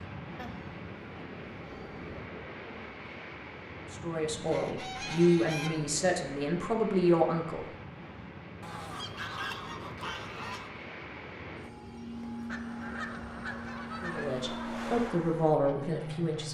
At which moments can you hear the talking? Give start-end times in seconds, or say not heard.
3.9-7.7, 14.0-16.4.